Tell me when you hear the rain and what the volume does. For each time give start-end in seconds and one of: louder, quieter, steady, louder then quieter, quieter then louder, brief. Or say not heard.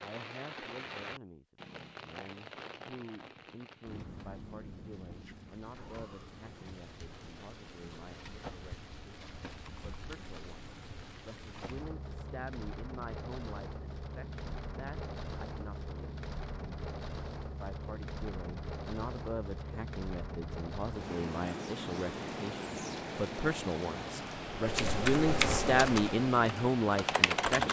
0.0-27.6 louder.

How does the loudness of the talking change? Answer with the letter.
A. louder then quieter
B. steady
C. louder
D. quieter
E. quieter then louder
C.